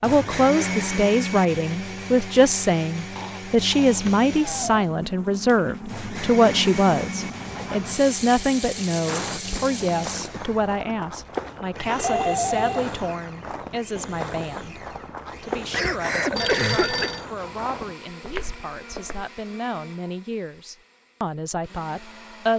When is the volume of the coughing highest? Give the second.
17 s.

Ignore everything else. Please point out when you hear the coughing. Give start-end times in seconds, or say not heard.
3.1-4.8, 9.1-10.7, 15.7-17.1.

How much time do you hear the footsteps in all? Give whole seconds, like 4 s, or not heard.
10 s.